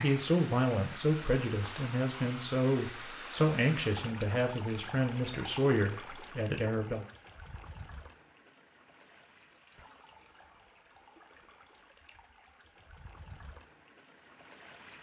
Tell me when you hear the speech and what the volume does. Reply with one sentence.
The speech can be heard from 0.0 to 7.0 s, at a steady volume.